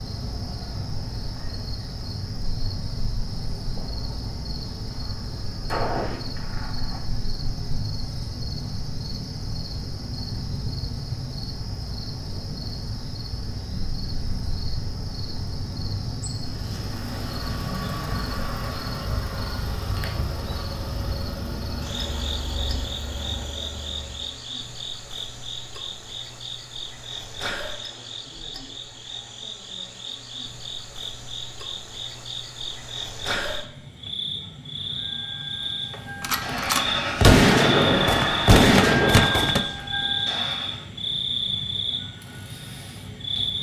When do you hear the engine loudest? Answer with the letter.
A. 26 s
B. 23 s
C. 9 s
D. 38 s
D.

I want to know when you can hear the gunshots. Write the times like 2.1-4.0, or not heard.
5.0-7.0, 36.2-39.6.